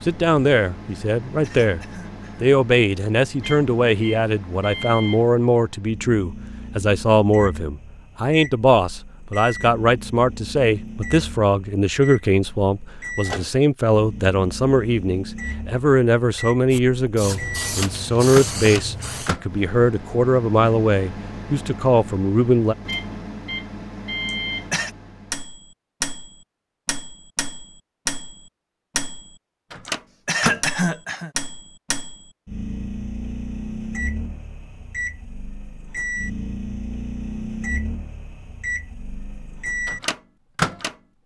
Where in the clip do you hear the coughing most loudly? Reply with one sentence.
The volume of the coughing peaks at 31 seconds.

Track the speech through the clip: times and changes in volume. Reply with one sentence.
The speech can be heard briefly from 0.1 to 1.8 s; and from 2.4 to 22.8 s, at a steady volume.